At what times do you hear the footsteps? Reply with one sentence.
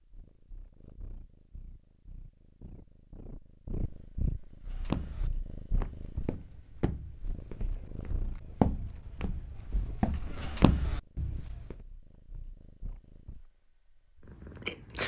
You can hear the footsteps from 4.7 to 11.8 s.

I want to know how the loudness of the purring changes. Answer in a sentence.
The volume of the purring goes up, then down.